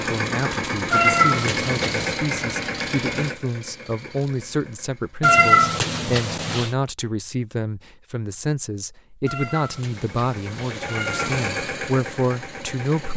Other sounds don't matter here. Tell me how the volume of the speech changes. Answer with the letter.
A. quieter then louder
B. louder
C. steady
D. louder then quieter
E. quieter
C.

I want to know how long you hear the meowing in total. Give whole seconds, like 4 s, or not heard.
5 s.